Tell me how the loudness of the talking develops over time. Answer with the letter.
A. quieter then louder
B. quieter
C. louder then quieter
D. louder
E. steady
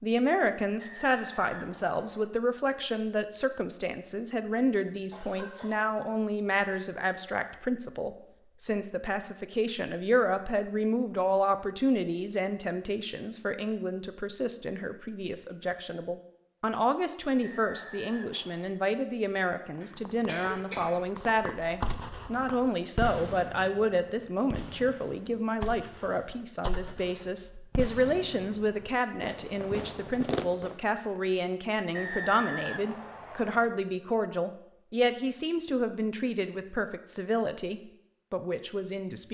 E.